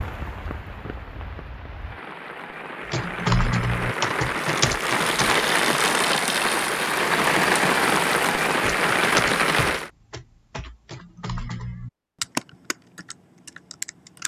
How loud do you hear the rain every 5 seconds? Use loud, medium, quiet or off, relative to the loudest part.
medium, loud, off.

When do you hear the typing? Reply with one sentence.
The typing can be heard from 2.9 to 5.5 s and from 8.6 to 14.2 s.